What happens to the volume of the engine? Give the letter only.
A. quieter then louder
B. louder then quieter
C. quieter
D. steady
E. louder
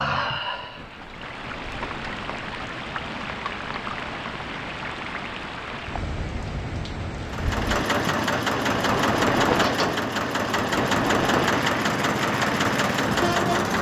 D.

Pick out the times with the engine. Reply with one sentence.
The engine can be heard from 7.2 to 13.7 s.